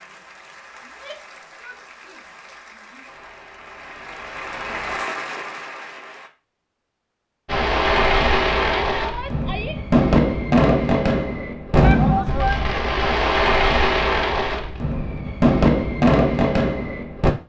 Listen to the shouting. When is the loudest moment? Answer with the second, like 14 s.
12 s.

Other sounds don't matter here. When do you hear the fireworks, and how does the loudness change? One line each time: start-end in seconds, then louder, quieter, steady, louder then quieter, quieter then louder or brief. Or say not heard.
7.5-17.3 steady.